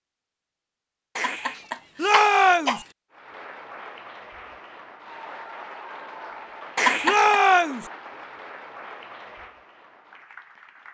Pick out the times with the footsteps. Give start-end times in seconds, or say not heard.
not heard.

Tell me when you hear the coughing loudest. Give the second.
7 s.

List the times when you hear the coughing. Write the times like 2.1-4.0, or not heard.
1.1-2.9, 6.8-7.4.